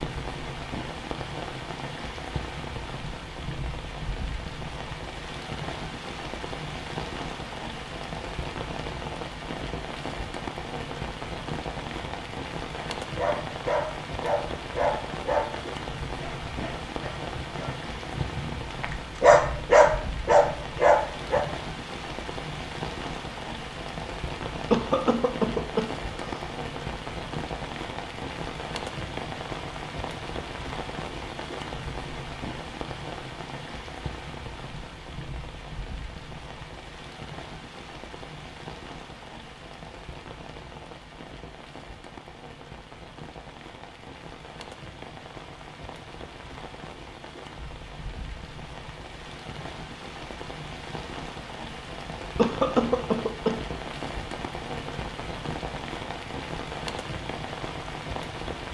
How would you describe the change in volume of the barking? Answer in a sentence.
The loudness of the barking goes down, then up.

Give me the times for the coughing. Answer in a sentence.
The coughing can be heard from 24.7 to 26.4 s and from 52.4 to 53.6 s.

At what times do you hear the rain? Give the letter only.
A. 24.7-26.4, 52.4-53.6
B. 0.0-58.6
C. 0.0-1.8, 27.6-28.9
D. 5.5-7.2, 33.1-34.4
B.